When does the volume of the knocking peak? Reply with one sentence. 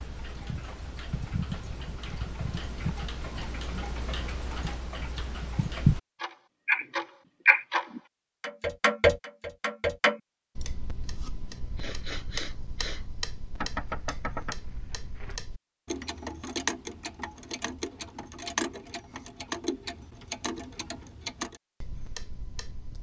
The loudest moment of the knocking is at 14 seconds.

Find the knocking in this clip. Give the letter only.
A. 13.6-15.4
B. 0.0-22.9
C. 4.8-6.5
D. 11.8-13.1
A.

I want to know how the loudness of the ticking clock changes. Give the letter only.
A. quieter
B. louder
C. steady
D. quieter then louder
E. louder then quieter
E.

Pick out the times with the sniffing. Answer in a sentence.
You can hear the sniffing from 11.8 to 13.1 s.